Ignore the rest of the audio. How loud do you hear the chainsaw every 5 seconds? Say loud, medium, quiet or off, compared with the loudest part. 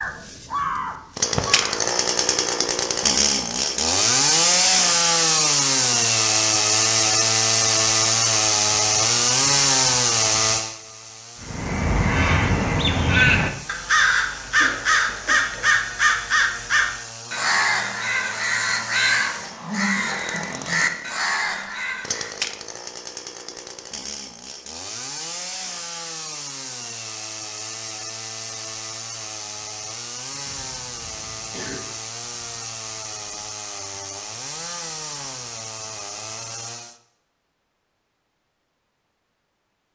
loud, loud, medium, quiet, quiet, quiet, quiet, quiet.